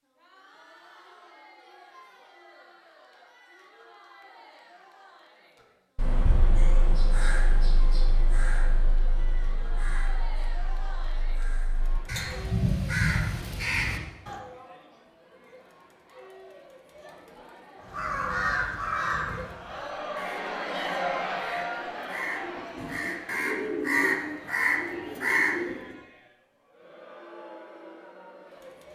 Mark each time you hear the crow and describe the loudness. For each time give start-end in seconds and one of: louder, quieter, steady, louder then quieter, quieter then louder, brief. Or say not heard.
6.0-14.3 quieter then louder
17.8-25.9 quieter then louder.